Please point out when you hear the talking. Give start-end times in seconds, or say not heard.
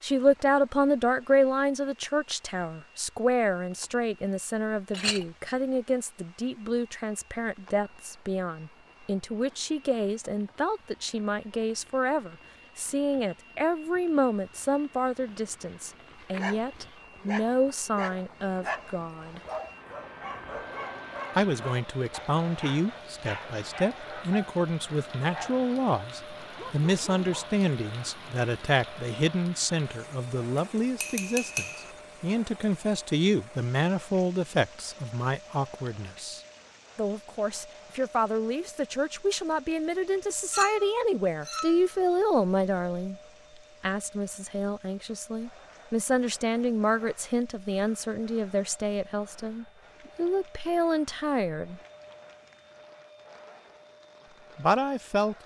0.0-19.4, 21.4-43.1, 43.8-51.8, 54.5-55.4.